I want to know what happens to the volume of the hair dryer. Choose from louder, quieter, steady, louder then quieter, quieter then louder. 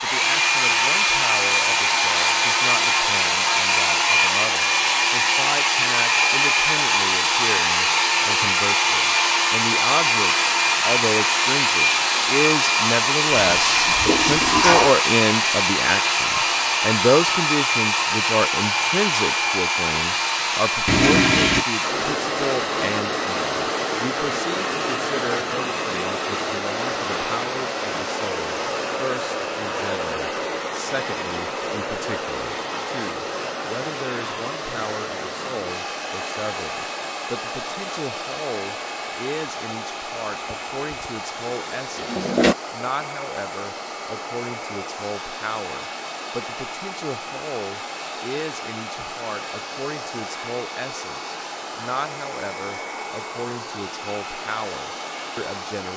quieter.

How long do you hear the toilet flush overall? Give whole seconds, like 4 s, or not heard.
3 s.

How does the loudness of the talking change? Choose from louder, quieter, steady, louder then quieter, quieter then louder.
louder then quieter.